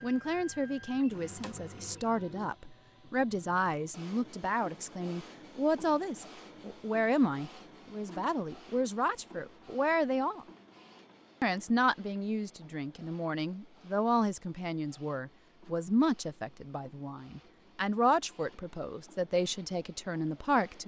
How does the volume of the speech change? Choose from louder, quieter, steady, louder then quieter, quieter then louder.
steady.